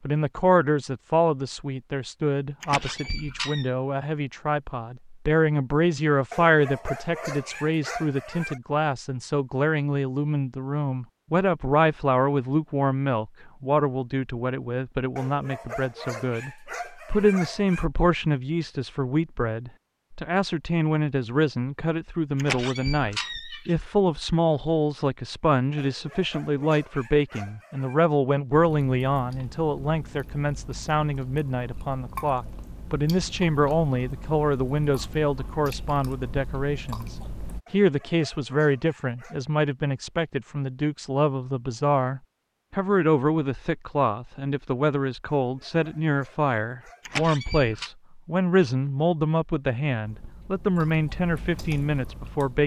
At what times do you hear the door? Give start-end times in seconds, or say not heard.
2.6-3.7, 22.4-23.8, 47.0-47.9.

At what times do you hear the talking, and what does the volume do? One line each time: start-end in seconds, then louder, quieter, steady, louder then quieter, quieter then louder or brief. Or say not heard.
0.0-52.6 steady.